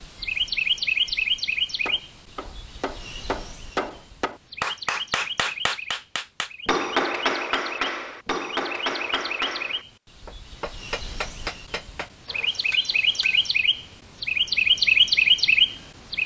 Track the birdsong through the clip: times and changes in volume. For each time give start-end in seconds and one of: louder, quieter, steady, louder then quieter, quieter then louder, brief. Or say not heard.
0.0-16.2 quieter then louder.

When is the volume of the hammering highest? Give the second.
7 s.